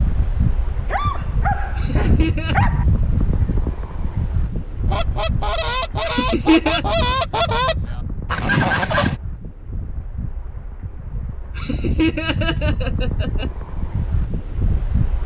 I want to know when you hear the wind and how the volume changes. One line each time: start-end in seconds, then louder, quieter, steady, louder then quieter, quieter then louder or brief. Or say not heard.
0.0-15.2 quieter then louder.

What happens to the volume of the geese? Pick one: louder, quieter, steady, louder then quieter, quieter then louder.
louder.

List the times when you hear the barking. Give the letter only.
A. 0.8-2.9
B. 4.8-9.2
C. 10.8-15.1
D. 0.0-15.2
A.